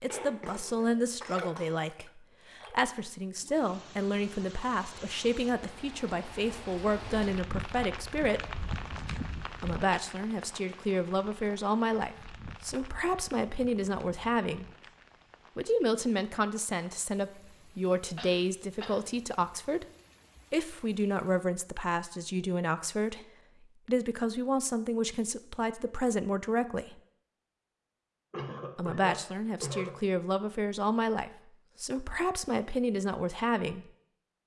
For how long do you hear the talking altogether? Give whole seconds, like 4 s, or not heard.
29 s.